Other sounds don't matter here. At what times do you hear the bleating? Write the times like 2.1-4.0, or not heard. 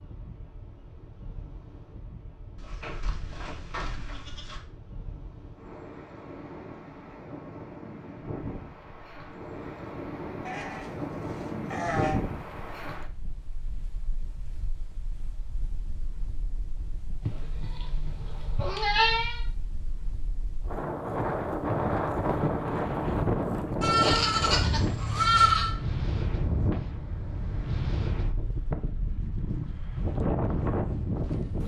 2.5-4.6, 10.4-12.2, 17.2-19.4, 23.8-25.8.